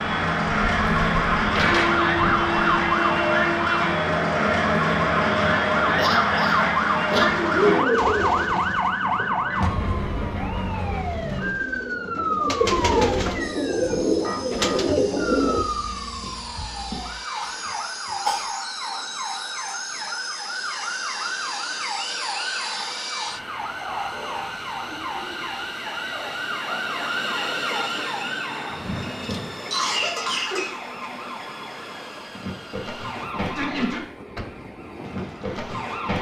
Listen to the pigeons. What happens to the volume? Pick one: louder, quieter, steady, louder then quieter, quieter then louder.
quieter then louder.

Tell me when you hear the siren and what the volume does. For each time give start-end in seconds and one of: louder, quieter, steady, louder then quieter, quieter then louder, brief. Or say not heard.
0.0-36.1 quieter.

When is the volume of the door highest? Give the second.
2 s.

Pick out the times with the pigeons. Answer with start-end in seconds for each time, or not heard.
7.1-15.7.